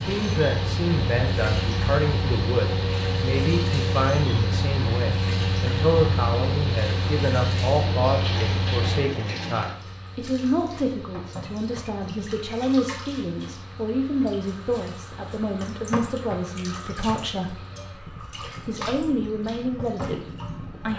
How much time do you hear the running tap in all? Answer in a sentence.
The running tap can be heard for 21 seconds in total.